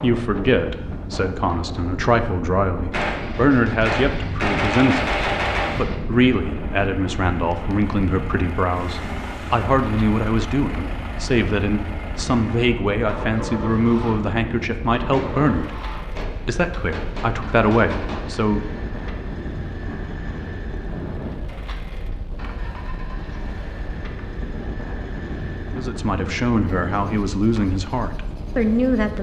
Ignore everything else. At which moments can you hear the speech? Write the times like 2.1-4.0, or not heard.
0.0-18.6, 25.8-29.1.